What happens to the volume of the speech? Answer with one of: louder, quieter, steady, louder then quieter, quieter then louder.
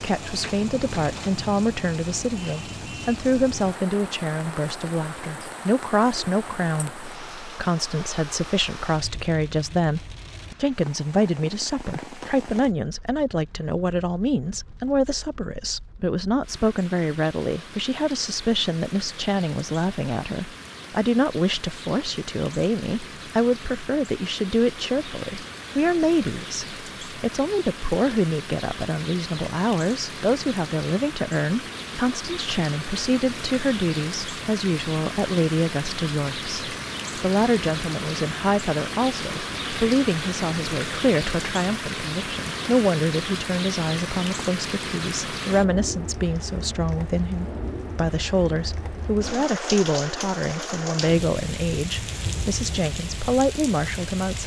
steady.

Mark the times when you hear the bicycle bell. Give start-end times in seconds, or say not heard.
not heard.